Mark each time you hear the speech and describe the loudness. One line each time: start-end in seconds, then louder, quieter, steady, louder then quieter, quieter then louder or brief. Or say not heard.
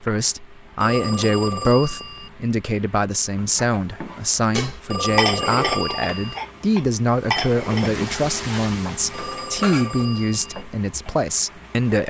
0.0-12.0 steady.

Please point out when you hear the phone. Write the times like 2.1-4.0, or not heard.
0.8-2.3, 4.8-6.4, 9.1-10.7.